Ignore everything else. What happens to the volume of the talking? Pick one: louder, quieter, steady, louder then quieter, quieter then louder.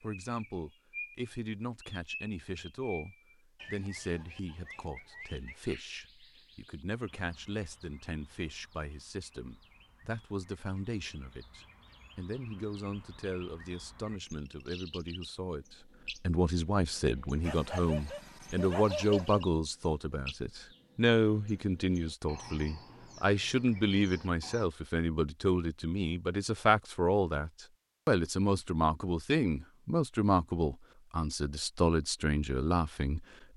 louder.